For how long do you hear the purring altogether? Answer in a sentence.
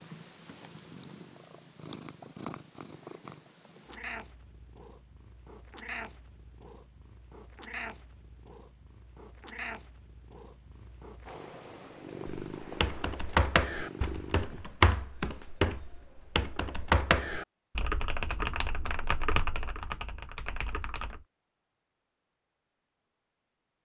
The purring can be heard for 15 seconds in total.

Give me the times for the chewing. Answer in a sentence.
The chewing can't be heard in this clip.